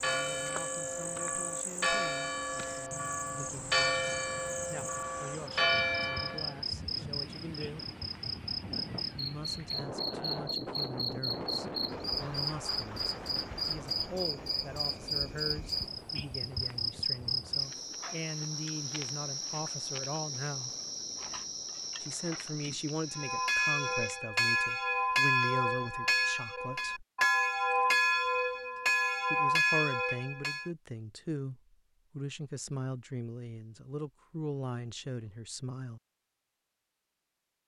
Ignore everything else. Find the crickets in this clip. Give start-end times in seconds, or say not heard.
0.0-24.2.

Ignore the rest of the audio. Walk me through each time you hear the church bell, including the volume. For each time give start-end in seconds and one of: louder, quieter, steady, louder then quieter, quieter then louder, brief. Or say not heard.
0.0-6.6 louder
23.1-30.7 steady.